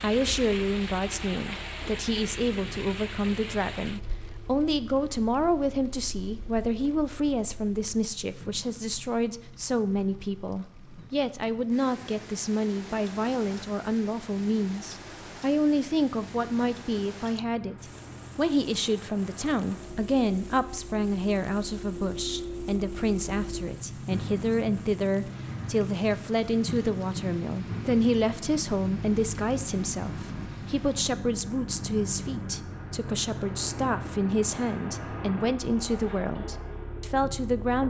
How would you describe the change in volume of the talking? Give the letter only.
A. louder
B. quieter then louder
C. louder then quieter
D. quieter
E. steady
E.